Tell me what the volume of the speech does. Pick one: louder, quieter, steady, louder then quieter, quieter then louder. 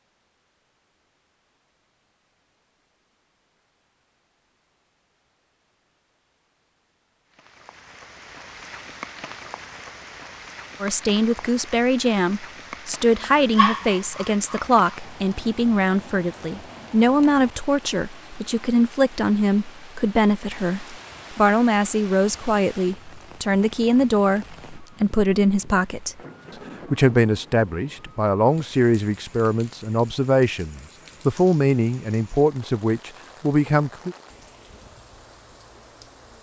steady.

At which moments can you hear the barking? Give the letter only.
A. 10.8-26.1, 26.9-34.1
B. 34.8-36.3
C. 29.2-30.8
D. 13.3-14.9
D.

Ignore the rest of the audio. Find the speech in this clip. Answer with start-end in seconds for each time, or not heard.
10.8-26.1, 26.9-34.1.